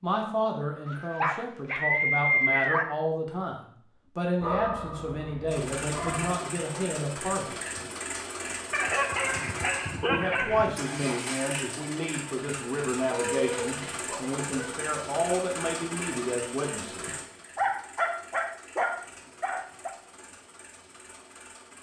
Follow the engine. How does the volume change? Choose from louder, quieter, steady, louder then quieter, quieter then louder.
quieter.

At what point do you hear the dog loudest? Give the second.
2 s.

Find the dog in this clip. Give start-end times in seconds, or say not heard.
0.8-2.9, 4.4-6.3, 8.7-10.7, 13.1-14.8, 17.6-19.9.